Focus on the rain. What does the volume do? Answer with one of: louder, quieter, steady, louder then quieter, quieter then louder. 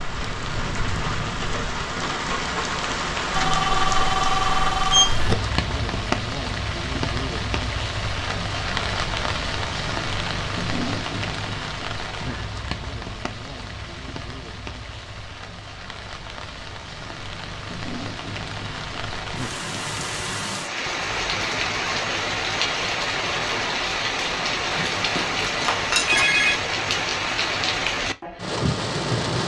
quieter then louder.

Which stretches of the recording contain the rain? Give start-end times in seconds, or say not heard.
0.0-29.4.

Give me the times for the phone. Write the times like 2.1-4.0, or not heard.
3.3-5.3, 24.7-26.6.